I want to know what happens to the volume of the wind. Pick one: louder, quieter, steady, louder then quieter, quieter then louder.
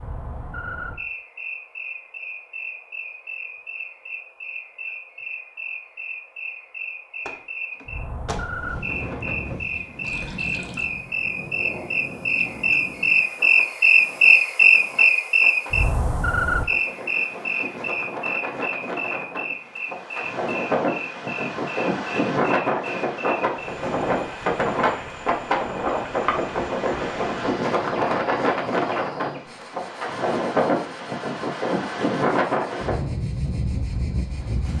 louder.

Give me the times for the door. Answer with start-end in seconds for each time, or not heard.
7.2-8.7.